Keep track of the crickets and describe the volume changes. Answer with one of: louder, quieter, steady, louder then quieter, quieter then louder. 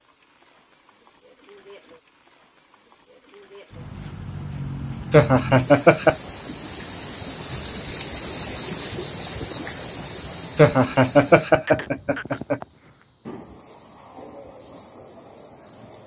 louder then quieter.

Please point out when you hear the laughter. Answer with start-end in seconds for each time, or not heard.
5.1-6.2, 10.6-12.6.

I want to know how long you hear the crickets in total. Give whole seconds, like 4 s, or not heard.
16 s.